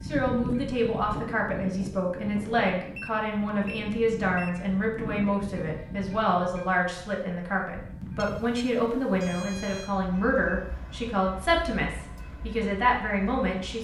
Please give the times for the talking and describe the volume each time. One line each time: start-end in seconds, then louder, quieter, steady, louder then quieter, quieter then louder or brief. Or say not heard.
0.0-13.8 steady.